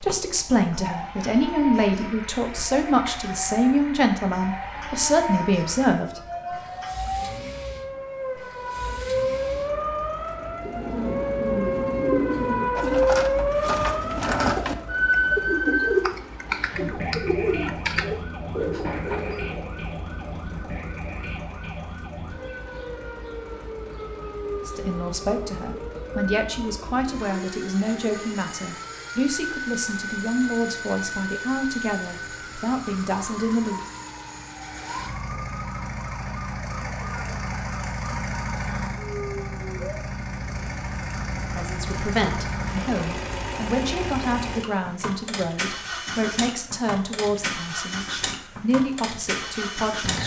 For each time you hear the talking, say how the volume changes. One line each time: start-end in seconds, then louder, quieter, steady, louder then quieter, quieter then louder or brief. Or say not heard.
0.0-6.2 steady
24.6-33.8 steady
41.5-50.2 steady.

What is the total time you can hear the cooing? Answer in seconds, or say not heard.
9 s.